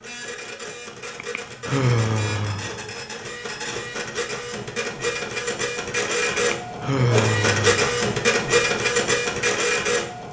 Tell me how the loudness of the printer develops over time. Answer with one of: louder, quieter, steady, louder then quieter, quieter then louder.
louder.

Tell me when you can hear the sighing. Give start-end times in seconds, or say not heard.
1.1-2.9, 6.3-7.8.